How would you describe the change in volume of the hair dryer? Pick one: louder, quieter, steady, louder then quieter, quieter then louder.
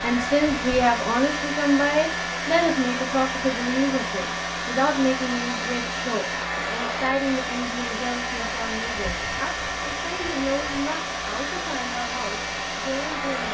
steady.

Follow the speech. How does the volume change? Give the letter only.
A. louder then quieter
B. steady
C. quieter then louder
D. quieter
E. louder
D.